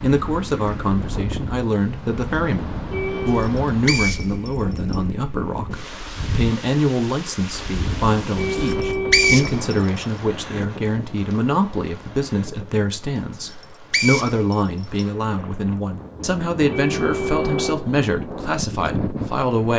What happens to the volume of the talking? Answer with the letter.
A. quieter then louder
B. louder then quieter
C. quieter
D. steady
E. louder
D.